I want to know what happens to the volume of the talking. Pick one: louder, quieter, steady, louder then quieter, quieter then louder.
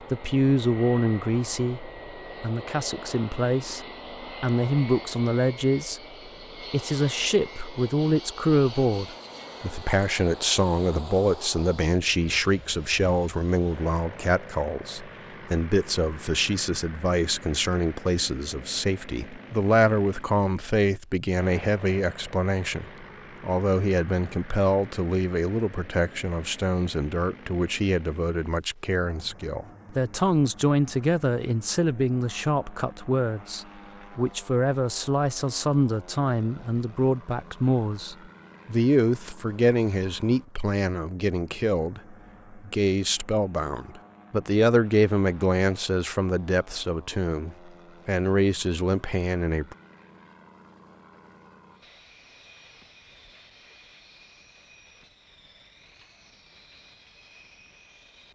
steady.